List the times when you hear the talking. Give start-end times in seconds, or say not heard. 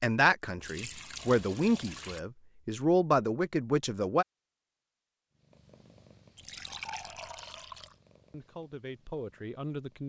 0.0-4.2, 8.3-10.0.